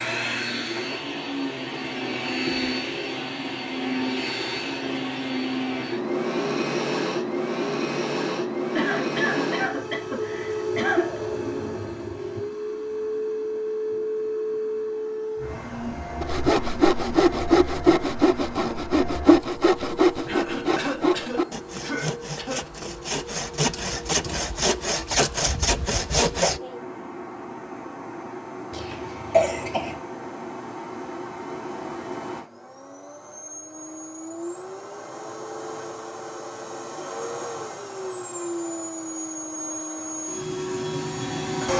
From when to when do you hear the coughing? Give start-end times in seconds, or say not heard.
8.8-11.2, 20.2-22.6, 28.7-29.9.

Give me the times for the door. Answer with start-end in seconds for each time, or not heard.
not heard.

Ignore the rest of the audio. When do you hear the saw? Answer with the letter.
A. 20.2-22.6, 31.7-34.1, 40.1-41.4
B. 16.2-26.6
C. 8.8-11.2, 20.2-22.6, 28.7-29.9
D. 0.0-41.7
B.